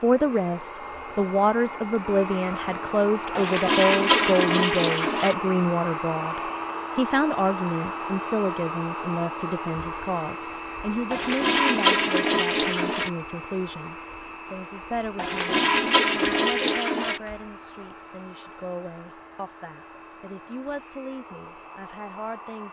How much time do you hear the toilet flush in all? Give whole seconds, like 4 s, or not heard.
6 s.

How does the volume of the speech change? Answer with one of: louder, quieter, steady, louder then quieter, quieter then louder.
quieter.